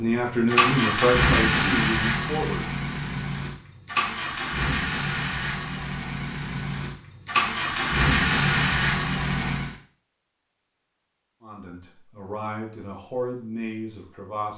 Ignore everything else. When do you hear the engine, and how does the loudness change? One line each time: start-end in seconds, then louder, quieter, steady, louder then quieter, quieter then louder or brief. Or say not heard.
0.1-9.7 quieter then louder.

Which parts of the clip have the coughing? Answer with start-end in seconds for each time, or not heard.
not heard.